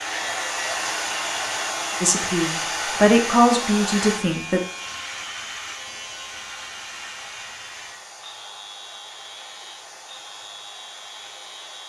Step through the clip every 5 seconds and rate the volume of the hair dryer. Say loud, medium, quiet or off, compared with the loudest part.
loud, quiet, quiet.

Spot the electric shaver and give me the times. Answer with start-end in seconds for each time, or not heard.
0.0-11.8.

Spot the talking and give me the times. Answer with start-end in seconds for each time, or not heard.
2.0-4.6.